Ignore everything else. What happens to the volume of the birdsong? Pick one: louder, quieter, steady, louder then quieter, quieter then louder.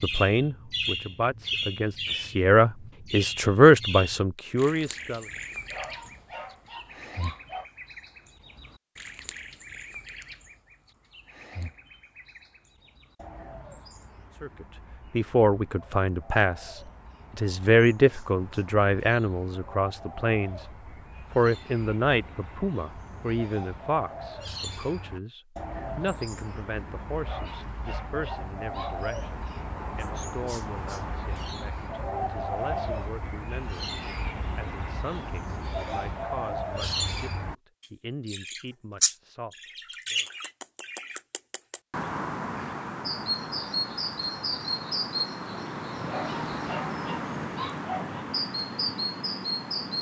quieter then louder.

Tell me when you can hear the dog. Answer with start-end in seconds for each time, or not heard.
5.7-7.7, 27.2-29.0, 46.0-48.2.